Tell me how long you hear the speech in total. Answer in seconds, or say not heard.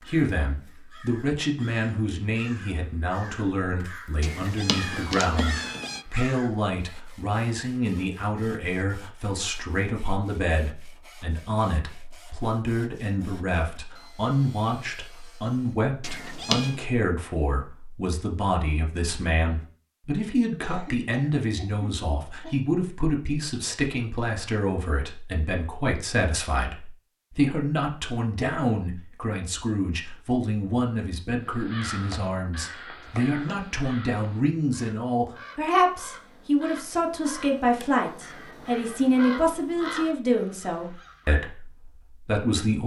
43 s.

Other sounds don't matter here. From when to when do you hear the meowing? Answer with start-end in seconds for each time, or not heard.
4.2-6.0, 16.0-16.8, 33.0-33.8.